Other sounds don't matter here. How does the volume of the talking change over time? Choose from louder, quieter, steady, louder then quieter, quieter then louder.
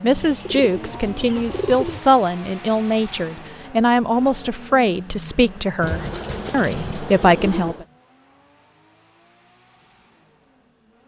steady.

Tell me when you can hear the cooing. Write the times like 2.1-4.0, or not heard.
0.1-2.0, 5.8-7.8.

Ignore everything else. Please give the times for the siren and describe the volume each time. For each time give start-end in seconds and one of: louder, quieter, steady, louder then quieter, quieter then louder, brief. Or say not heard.
not heard.